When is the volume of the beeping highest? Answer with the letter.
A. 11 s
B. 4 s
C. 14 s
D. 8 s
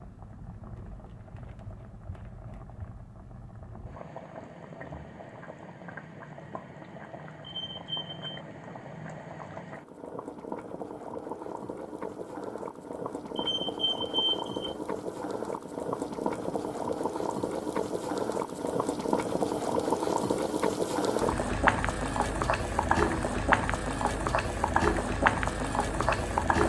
C.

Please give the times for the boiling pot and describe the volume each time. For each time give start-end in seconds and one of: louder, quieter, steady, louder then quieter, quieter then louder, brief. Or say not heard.
0.0-26.6 louder.